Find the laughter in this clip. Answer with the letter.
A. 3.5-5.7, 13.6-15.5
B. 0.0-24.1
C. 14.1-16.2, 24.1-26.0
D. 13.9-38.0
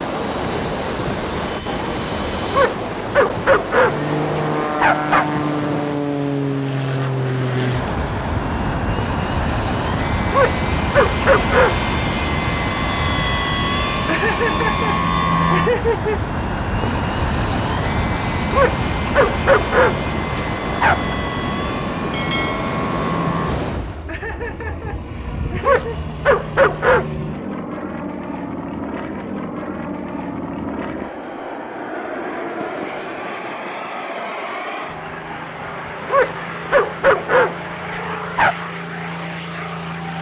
C.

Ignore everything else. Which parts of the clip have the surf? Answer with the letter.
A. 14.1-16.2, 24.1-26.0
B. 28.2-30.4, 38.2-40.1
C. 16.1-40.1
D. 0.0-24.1
D.